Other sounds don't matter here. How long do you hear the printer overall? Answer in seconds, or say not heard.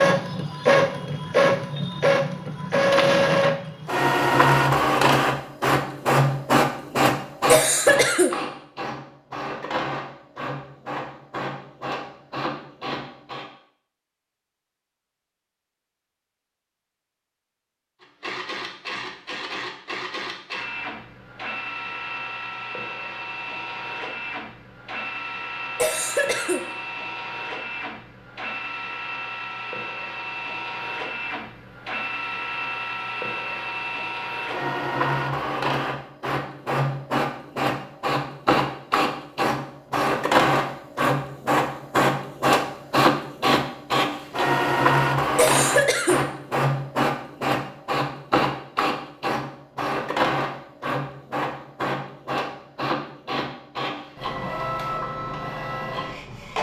52 s.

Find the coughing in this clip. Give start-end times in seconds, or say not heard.
7.5-8.3, 25.8-26.6, 45.4-46.2.